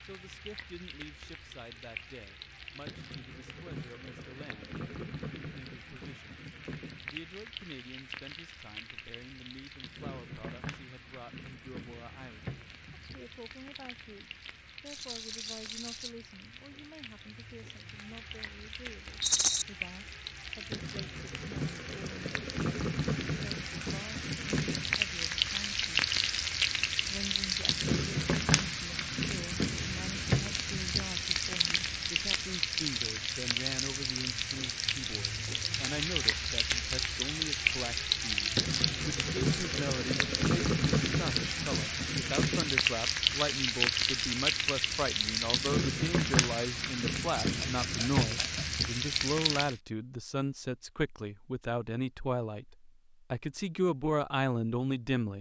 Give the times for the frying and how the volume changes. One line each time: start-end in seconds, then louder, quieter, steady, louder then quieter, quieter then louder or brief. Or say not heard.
0.0-49.8 louder.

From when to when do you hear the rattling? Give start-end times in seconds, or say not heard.
14.8-16.1, 19.2-19.6, 47.4-48.6.